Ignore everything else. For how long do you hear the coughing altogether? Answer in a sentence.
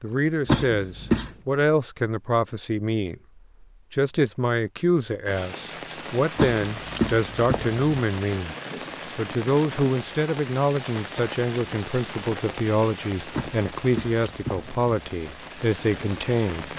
You can hear the coughing for 4 seconds altogether.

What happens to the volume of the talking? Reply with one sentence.
The loudness of the talking stays about the same.